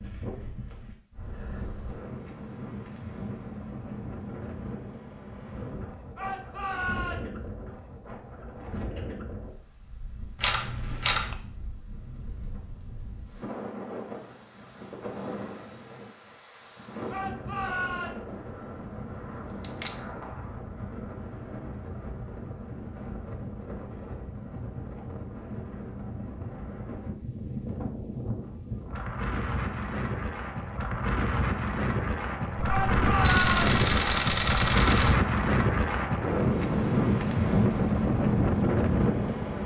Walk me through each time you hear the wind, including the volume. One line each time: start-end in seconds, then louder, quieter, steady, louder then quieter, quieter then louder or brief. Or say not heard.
0.0-39.6 louder.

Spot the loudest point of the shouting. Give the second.
33 s.